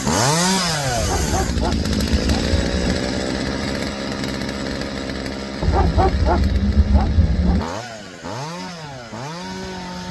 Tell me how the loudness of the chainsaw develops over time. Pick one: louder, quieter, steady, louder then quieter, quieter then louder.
quieter.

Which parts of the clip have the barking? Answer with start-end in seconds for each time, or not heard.
0.9-2.8, 5.6-7.7.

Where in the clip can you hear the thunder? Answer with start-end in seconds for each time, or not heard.
not heard.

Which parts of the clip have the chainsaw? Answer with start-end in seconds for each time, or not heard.
0.0-10.0.